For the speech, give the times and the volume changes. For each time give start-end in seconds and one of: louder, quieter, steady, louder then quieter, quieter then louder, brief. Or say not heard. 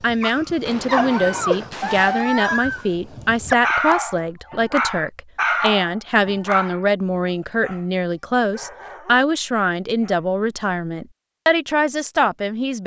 0.0-12.8 steady.